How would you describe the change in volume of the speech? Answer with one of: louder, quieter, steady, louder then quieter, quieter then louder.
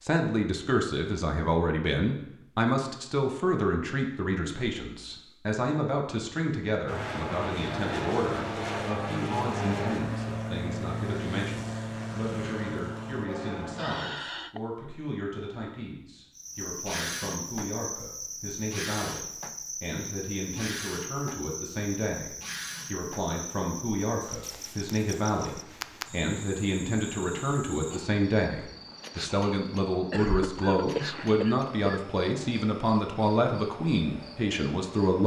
quieter then louder.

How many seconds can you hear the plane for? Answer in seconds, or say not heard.
7 s.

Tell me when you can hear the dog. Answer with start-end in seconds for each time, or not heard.
not heard.